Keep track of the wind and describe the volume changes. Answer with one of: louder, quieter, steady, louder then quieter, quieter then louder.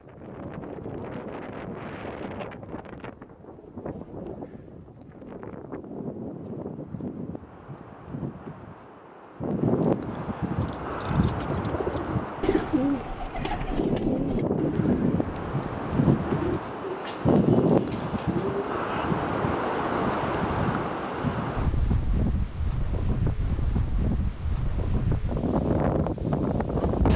louder.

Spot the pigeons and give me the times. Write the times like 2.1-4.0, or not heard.
10.6-18.8.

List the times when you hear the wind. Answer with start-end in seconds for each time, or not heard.
0.0-27.1.